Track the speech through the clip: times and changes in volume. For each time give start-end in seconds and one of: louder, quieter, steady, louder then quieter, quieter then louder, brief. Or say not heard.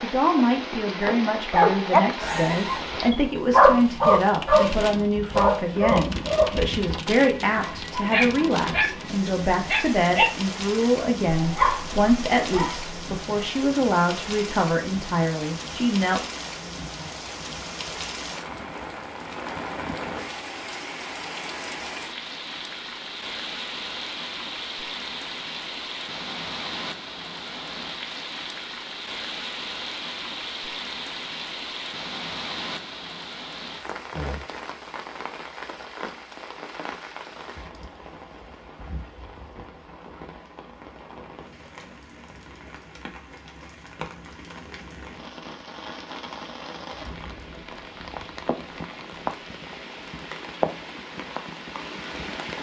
0.0-16.2 steady.